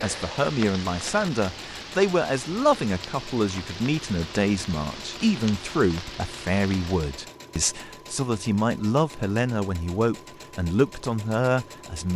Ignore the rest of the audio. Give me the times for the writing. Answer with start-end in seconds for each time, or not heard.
not heard.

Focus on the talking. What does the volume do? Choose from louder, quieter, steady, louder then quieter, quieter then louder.
steady.